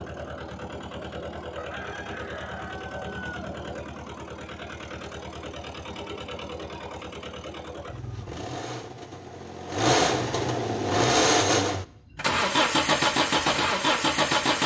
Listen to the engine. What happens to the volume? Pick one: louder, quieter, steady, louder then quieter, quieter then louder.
louder.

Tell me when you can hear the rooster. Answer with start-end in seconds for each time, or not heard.
1.6-3.5.